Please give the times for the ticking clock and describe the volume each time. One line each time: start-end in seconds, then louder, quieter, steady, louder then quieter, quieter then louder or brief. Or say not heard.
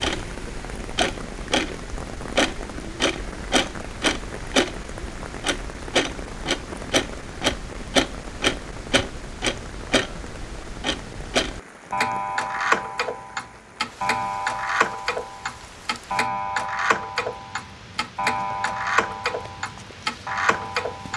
0.0-21.1 steady.